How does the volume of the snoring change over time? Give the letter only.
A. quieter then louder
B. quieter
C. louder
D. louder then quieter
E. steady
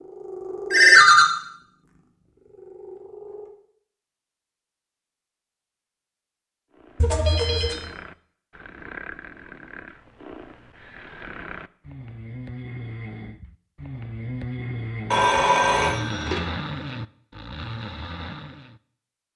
C.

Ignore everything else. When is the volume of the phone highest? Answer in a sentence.
The volume of the phone peaks at 1 second.